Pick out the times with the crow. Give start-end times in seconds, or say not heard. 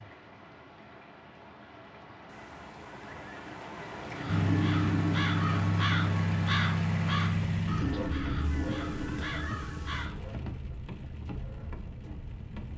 4.1-10.2.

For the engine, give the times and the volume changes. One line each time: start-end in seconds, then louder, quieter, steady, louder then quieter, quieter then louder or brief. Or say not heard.
4.2-12.7 quieter.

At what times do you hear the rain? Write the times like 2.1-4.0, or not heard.
0.0-12.7.